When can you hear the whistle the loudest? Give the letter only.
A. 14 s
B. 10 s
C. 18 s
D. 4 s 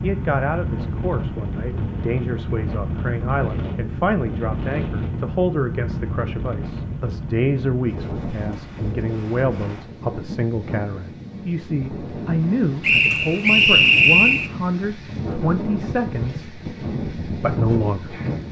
A.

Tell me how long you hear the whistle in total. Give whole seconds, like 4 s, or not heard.
2 s.